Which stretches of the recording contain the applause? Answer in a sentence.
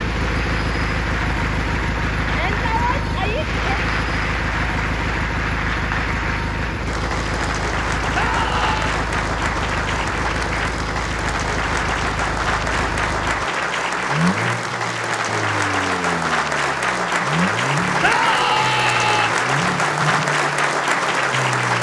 You can hear the applause from 0.0 to 21.7 s.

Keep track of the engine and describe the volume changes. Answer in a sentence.
The loudness of the engine stays about the same.